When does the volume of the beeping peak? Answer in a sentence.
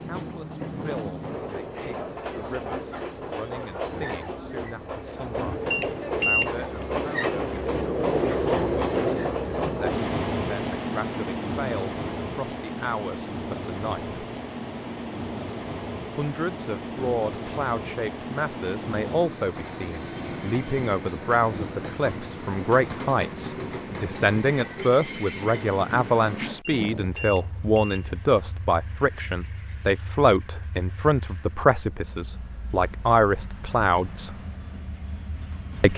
The volume of the beeping peaks at 6 seconds.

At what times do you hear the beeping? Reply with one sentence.
The beeping can be heard from 5.7 to 6.7 s and from 26.6 to 28.1 s.